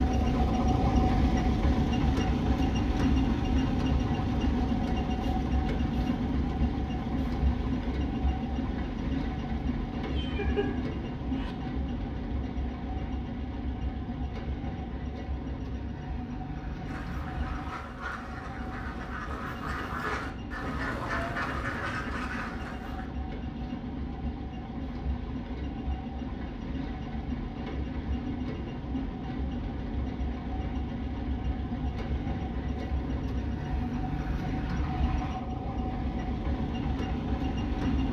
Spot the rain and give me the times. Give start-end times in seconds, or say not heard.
not heard.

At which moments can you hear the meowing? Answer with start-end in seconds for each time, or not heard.
10.1-11.6.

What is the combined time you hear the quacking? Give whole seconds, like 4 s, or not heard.
6 s.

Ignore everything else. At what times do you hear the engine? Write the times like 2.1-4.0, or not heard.
0.0-38.0.